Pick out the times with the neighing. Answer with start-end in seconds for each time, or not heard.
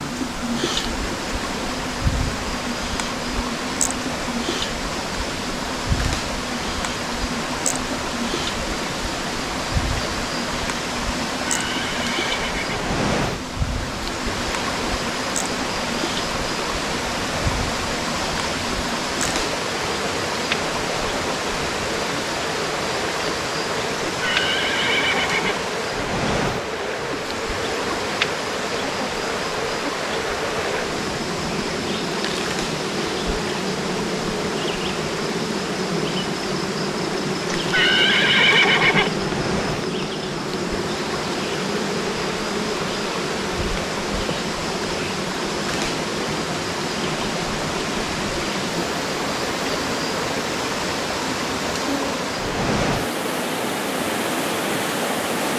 11.4-12.8, 24.1-25.6, 37.5-39.1.